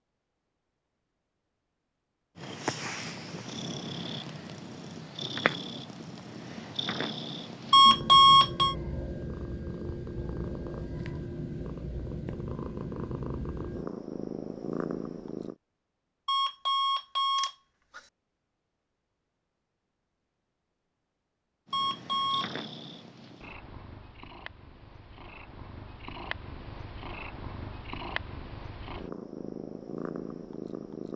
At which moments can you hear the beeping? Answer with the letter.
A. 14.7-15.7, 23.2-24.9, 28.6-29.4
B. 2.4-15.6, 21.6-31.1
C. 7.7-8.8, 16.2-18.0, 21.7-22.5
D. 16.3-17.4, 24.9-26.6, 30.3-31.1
C.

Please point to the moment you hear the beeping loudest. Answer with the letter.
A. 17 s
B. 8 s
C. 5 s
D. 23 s
B.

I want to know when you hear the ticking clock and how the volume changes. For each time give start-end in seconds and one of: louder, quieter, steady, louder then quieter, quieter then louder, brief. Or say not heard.
not heard.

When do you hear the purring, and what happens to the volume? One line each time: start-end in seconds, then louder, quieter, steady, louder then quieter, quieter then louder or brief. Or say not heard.
2.4-15.6 steady
21.6-31.1 quieter then louder.